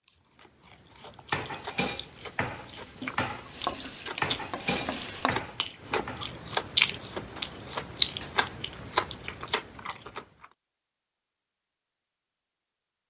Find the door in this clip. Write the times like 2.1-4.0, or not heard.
not heard.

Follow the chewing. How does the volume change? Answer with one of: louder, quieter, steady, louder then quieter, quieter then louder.
louder.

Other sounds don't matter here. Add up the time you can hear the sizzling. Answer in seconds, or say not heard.
2 s.